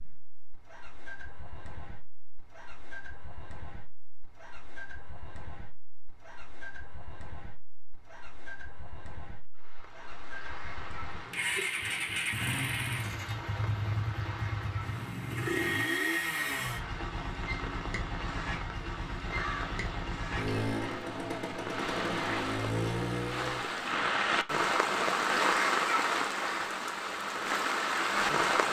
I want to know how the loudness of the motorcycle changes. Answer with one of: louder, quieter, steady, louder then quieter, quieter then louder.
louder.